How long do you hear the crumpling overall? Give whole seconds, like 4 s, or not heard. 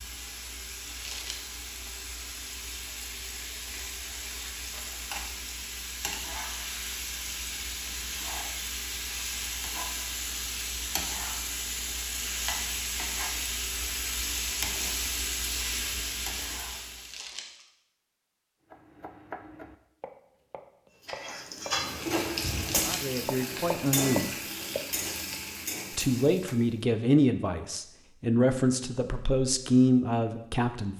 2 s.